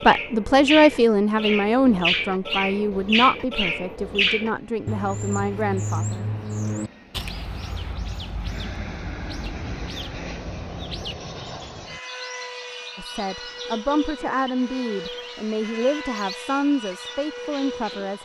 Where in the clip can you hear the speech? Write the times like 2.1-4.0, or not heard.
0.0-6.2, 12.9-18.2.